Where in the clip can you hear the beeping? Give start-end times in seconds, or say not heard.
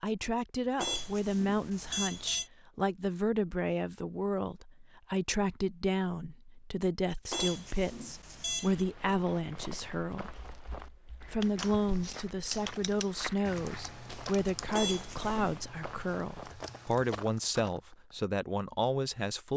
0.8-2.5, 7.3-8.8, 14.7-15.6.